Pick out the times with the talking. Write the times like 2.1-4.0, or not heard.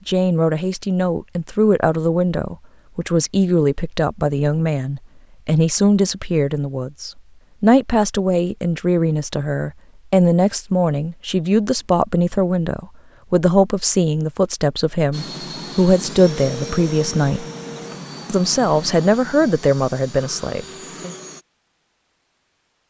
0.1-17.4, 18.2-21.1.